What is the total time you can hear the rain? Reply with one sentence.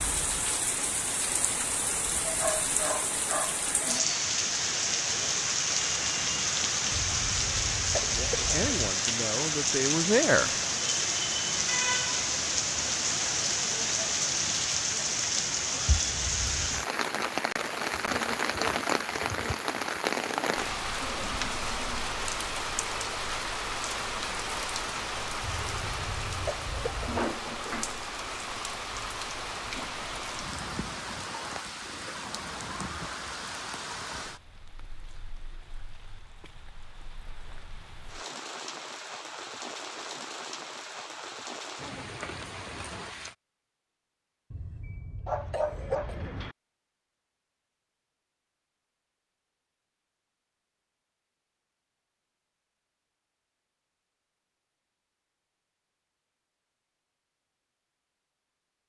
The rain can be heard for 43 seconds in total.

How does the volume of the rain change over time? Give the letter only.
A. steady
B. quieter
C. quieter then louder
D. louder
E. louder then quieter
B.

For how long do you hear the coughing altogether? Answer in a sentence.
The coughing can be heard for 6 seconds in total.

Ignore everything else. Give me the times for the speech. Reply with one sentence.
The speech can be heard from 8.1 to 10.5 s.